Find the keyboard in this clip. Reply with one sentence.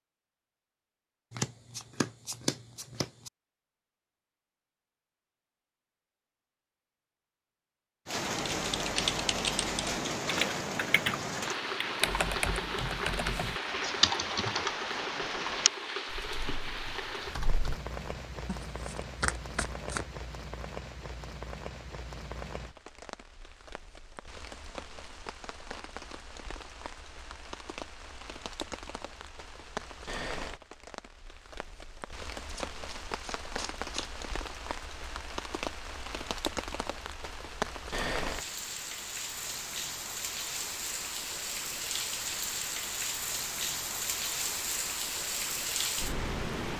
The keyboard can be heard from 8.5 to 17.8 s.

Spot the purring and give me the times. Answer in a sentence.
The purring can't be heard in this clip.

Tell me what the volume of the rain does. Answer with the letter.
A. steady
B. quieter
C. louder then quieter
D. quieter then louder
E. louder
D.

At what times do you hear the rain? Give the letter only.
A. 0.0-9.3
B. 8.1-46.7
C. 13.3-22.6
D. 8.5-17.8
B.